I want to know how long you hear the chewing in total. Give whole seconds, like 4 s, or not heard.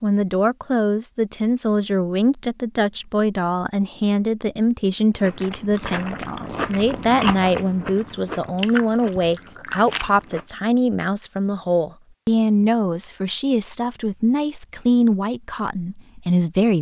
5 s.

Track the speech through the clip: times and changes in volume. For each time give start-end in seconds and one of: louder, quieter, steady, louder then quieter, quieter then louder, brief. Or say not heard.
0.0-16.7 steady.